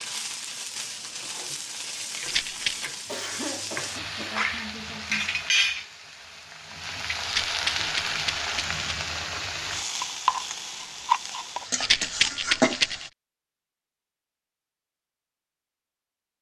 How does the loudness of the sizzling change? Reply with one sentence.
The volume of the sizzling goes up.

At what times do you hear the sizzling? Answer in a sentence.
You can hear the sizzling from 0.0 to 13.1 s.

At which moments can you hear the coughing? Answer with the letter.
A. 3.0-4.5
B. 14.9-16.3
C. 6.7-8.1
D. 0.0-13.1
A.